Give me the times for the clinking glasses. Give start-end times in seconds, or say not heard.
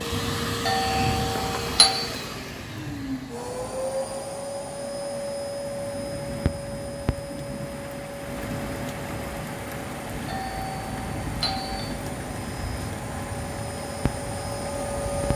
not heard.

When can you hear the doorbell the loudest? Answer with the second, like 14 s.
2 s.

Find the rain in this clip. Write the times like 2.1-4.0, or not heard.
0.0-15.3.